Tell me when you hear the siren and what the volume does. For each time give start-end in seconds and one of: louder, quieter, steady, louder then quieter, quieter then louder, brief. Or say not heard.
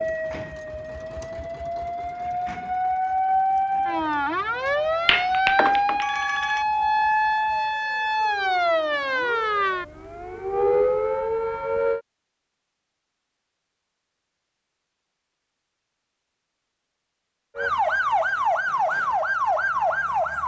0.0-12.0 louder
17.6-20.4 brief.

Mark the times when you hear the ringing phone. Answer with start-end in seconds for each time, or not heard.
4.7-6.7.